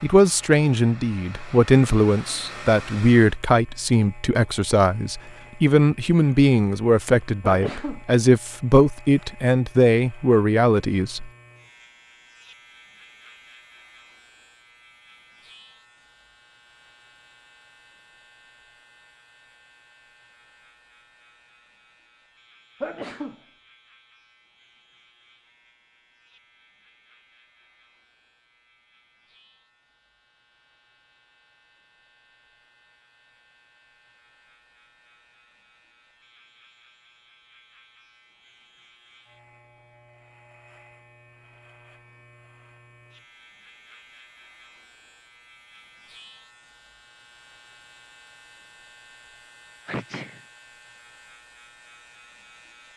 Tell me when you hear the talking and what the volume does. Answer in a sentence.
You can hear the talking from 0.0 to 11.3 s, at a steady volume.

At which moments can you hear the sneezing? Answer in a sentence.
You can hear the sneezing from 7.5 to 8.0 s, from 22.8 to 23.4 s and from 49.9 to 50.5 s.